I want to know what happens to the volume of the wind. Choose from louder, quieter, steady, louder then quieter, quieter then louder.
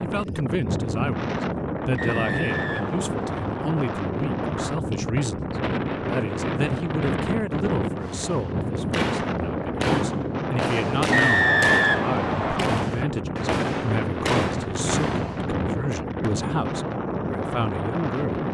steady.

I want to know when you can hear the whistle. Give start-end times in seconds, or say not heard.
1.9-3.6, 11.1-12.8.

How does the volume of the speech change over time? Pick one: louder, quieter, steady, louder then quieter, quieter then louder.
steady.